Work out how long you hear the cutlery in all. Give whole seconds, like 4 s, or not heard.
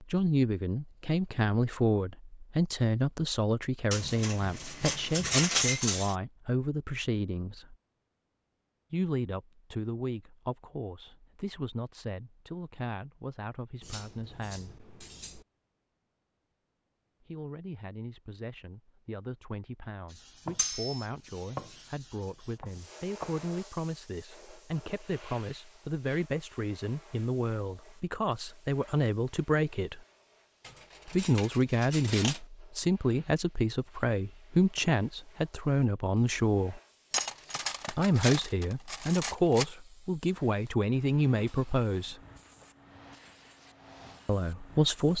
9 s.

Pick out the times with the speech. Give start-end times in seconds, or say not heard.
0.0-7.8, 8.9-14.8, 17.2-30.0, 31.1-36.8, 37.9-42.2, 44.2-45.1.